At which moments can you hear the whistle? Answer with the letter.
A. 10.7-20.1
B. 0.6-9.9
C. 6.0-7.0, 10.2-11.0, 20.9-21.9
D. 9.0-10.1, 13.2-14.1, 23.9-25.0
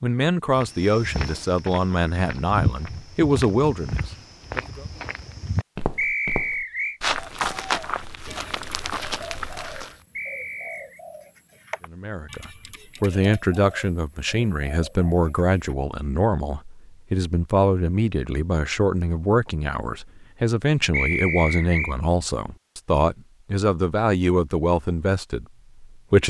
C.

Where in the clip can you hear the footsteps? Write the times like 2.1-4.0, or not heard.
0.6-9.9.